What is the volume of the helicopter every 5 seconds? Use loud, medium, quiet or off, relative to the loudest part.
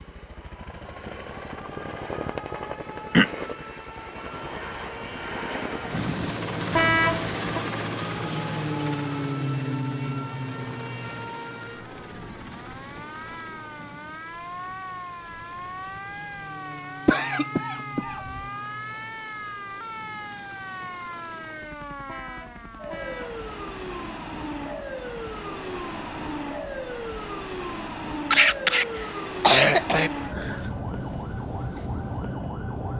medium, loud, medium, quiet, quiet, quiet, quiet.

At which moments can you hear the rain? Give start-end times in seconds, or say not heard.
not heard.